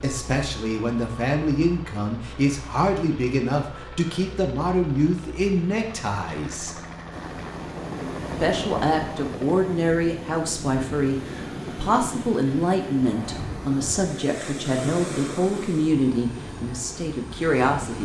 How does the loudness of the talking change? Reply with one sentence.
The loudness of the talking stays about the same.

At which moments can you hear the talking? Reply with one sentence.
The talking can be heard from 0.0 to 6.8 s and from 8.4 to 18.0 s.